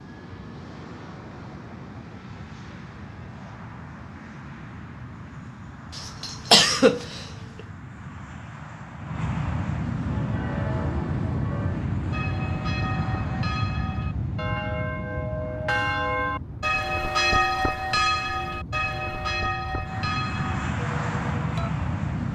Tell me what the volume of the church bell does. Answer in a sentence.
The loudness of the church bell goes up, then down.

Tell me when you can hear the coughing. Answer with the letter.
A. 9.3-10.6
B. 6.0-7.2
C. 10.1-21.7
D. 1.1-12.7
B.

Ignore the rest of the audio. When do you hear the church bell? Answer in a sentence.
You can hear the church bell from 10.1 to 21.7 s.